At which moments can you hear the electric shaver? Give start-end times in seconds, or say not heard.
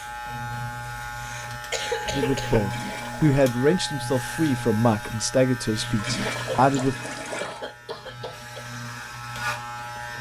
0.0-10.1.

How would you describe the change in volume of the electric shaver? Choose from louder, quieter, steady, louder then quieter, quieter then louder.
steady.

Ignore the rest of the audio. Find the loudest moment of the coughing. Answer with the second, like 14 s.
2 s.